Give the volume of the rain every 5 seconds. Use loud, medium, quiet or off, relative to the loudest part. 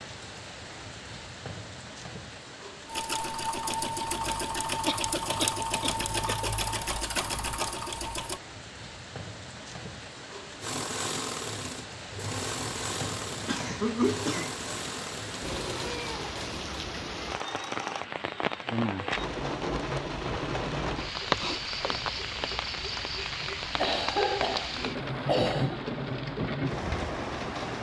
quiet, quiet, medium, loud, loud, loud.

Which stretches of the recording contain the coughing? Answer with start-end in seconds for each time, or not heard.
4.8-6.5, 13.4-14.5, 23.8-25.8.